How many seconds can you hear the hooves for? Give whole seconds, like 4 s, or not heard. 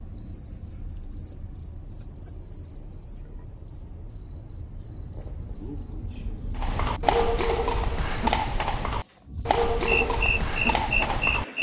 5 s.